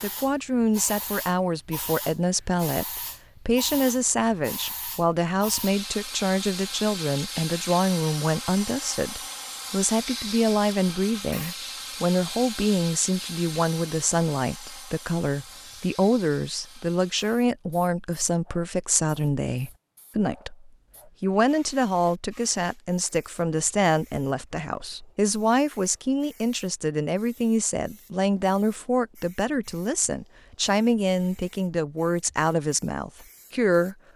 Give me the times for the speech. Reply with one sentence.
The speech can be heard from 0.0 to 34.0 s.